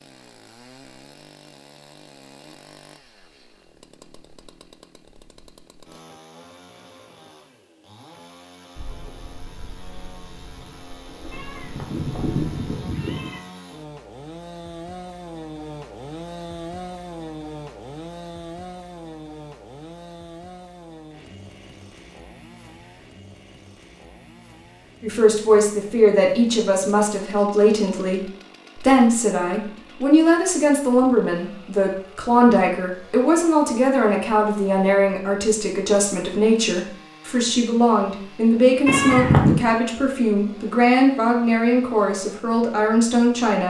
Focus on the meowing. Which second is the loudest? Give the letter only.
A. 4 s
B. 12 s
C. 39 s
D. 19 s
C.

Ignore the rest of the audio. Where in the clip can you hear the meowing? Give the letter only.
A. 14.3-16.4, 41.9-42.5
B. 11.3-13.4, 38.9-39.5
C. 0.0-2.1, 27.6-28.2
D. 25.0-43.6
B.